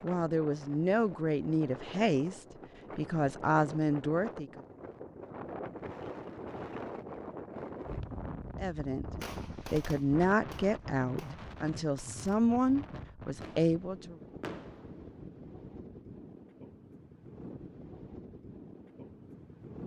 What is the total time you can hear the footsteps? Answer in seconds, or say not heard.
not heard.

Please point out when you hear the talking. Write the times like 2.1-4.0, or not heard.
0.0-4.6, 8.6-9.1, 9.7-14.2.